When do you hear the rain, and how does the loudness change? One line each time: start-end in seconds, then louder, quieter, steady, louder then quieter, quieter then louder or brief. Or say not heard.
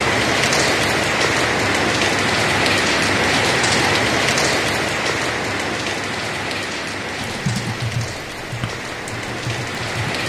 0.0-10.2 quieter.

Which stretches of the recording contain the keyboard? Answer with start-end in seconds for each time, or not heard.
7.2-10.2.